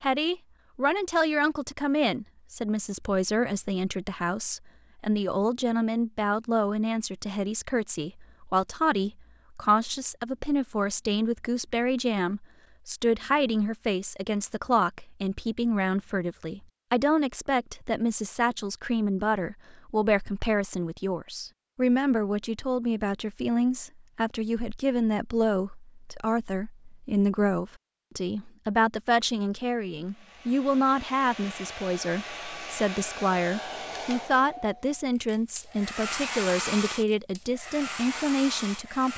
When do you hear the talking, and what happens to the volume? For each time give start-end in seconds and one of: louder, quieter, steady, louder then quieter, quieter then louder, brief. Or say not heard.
0.0-39.1 steady.